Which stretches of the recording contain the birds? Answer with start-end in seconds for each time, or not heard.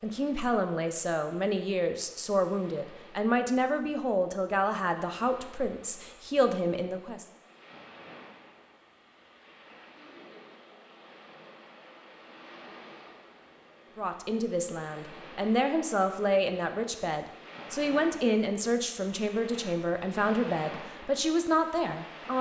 not heard.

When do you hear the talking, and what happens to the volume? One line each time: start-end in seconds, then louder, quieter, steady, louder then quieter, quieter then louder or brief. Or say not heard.
0.0-7.2 steady
13.9-22.3 steady.